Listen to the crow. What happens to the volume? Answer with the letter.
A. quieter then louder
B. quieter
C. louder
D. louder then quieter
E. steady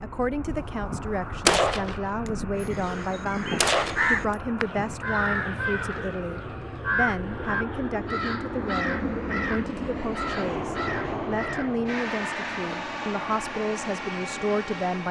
B.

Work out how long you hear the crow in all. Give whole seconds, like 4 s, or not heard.
11 s.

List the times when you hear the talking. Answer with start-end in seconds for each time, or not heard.
0.0-15.0.